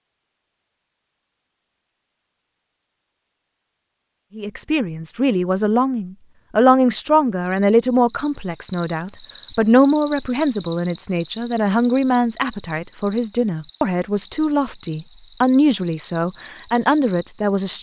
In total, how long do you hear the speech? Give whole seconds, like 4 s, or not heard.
13 s.